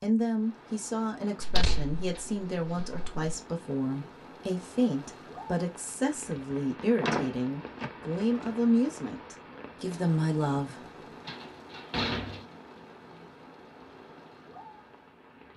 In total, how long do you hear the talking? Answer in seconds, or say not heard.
11 s.